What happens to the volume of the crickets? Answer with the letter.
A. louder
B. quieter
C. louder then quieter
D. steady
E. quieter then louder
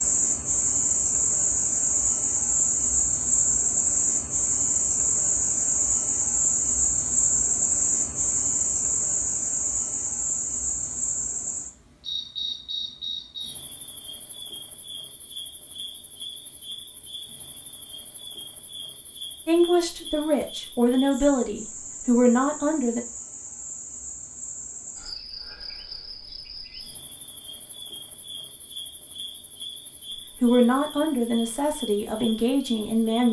B.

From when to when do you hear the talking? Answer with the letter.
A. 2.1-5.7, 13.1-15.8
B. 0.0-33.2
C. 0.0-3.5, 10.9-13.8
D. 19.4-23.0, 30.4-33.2
D.